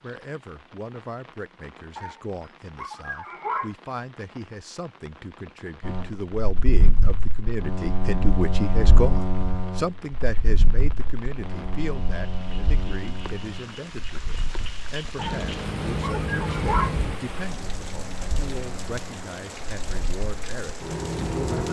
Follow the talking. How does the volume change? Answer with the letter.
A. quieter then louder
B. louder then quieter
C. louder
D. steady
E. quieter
B.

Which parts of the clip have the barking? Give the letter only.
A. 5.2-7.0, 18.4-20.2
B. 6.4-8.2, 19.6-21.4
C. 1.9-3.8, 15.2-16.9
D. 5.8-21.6
C.